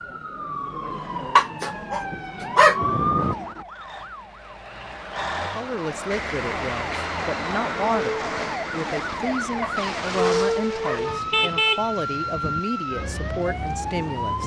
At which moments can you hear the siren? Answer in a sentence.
You can hear the siren from 0.0 to 14.4 s.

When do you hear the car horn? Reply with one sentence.
The car horn can be heard from 11.1 to 12.6 s.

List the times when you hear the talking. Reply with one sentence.
You can hear the talking from 5.3 to 14.4 s.